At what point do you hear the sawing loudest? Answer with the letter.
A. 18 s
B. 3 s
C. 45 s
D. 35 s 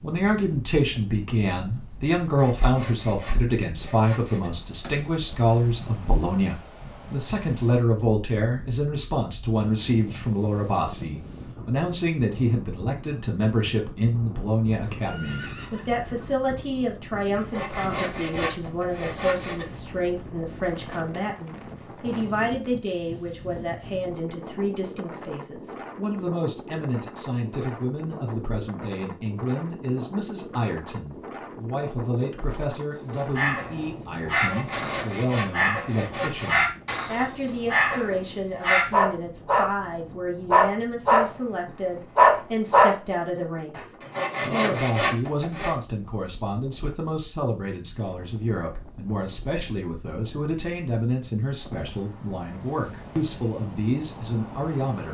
C.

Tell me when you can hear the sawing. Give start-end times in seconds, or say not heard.
2.2-5.0, 17.4-19.7, 34.4-37.0, 44.0-45.8.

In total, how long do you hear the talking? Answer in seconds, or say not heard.
55 s.